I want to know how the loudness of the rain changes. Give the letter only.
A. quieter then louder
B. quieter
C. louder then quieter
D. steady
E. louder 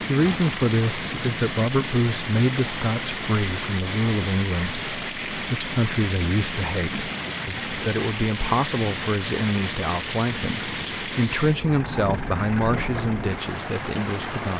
D.